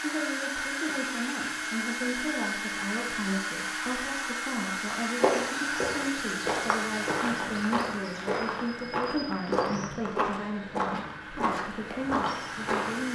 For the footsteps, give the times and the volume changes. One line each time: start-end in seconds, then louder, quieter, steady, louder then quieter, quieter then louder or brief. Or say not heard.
5.2-13.0 steady.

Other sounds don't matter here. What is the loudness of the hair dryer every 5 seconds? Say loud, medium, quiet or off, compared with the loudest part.
loud, loud, medium.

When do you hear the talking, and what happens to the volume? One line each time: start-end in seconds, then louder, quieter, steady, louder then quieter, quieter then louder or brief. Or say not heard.
0.0-13.0 steady.